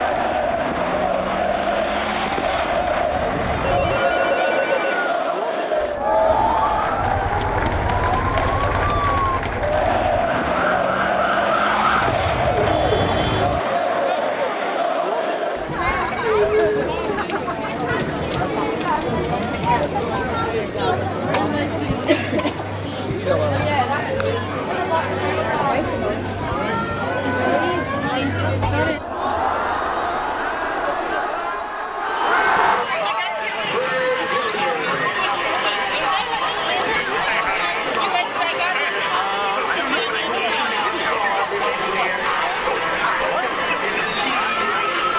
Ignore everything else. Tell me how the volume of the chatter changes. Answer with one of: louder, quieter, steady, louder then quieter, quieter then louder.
steady.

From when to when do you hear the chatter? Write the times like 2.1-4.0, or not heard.
0.0-45.1.